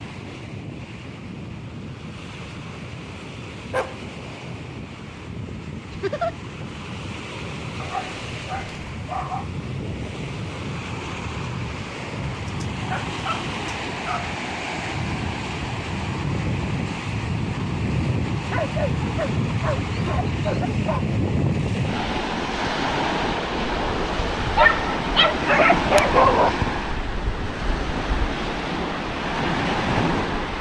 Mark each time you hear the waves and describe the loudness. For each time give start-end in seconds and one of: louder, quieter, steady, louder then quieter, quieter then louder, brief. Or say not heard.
0.0-30.5 louder.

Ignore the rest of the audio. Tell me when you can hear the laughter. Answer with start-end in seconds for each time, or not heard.
5.9-6.3.